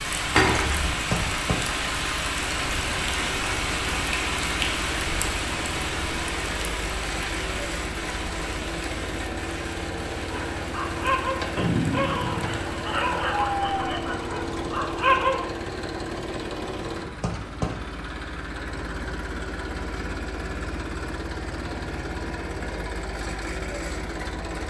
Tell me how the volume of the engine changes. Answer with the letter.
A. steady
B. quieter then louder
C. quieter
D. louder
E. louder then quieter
A.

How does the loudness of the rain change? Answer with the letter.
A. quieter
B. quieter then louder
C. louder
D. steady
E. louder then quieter
A.